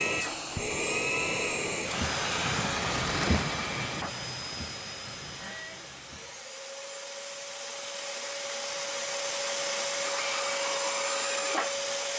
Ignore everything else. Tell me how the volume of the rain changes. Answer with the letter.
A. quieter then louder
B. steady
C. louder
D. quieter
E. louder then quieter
E.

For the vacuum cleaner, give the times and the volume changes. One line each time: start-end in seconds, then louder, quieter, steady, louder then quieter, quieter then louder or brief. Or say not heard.
0.0-12.1 quieter then louder.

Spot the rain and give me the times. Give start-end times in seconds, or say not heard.
0.0-6.5.